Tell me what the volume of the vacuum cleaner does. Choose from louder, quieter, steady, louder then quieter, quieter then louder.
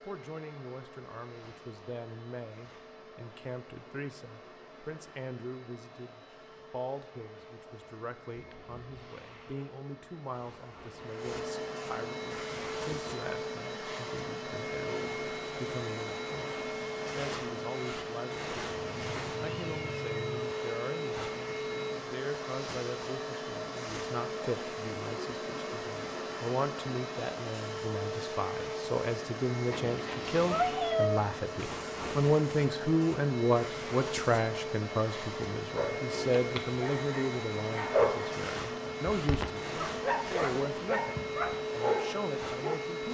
louder.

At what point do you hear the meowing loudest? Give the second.
31 s.